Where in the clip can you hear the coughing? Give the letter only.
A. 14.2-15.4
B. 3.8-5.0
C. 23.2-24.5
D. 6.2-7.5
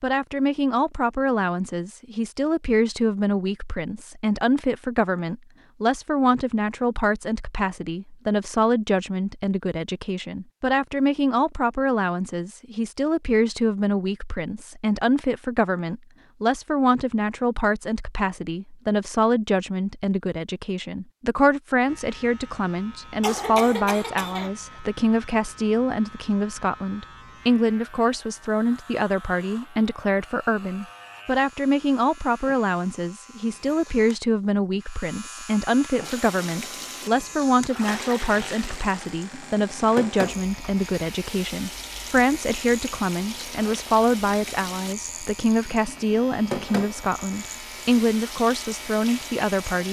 C.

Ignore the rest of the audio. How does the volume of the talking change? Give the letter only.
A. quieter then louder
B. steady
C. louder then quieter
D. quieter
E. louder
B.